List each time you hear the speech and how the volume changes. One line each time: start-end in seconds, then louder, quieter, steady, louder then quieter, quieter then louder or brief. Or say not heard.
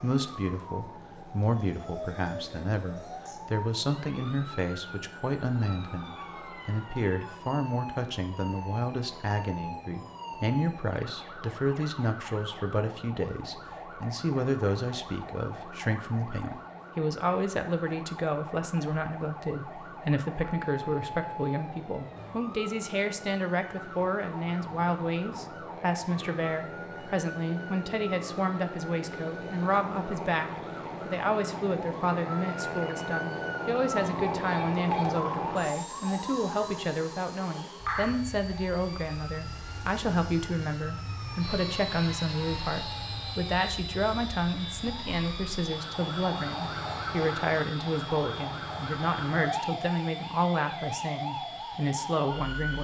0.0-52.7 steady.